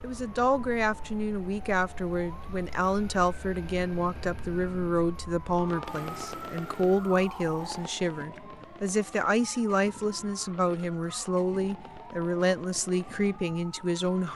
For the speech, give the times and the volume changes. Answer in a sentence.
The speech can be heard from 0.0 to 14.3 s, at a steady volume.